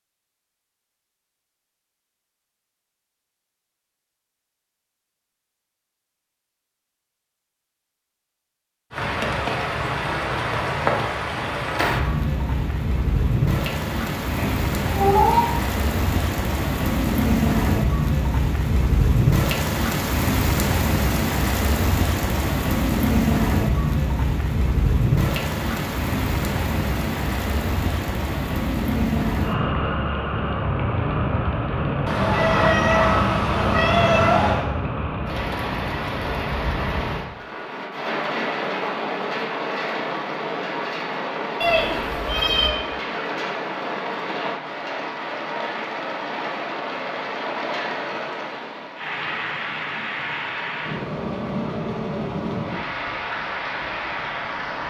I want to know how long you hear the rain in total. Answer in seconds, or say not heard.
46 s.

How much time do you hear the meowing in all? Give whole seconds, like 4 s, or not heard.
5 s.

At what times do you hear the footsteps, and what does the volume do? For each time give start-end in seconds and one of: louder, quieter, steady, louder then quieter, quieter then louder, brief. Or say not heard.
not heard.